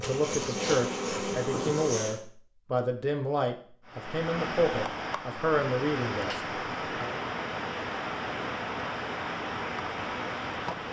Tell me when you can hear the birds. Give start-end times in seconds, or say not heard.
not heard.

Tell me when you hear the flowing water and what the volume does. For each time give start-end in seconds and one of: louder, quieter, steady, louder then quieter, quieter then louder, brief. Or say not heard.
3.9-10.8 steady.